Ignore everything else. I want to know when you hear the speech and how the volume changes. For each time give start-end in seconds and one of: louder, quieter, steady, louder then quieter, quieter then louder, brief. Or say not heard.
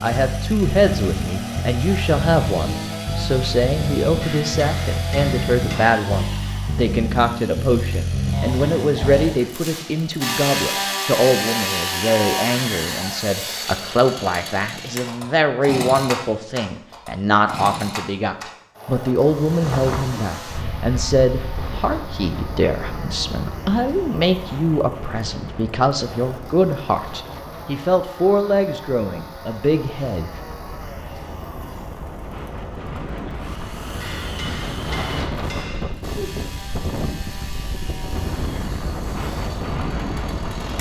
0.0-30.3 steady.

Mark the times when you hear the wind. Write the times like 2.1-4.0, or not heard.
19.1-40.7.